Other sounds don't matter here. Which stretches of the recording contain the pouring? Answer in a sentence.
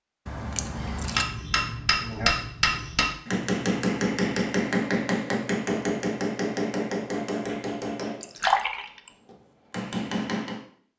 The pouring can be heard from 0.2 to 1.2 s and from 8.2 to 9.1 s.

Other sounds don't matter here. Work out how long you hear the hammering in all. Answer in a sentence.
The hammering can be heard for 10 seconds in total.